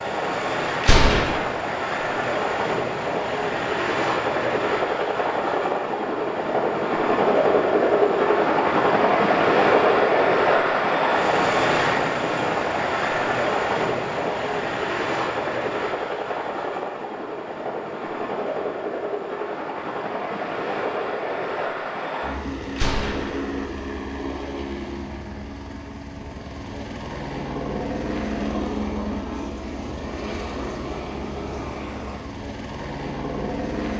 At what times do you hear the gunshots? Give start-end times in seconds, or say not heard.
0.8-1.4, 22.8-23.4.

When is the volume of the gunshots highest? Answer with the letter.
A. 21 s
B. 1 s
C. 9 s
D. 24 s
B.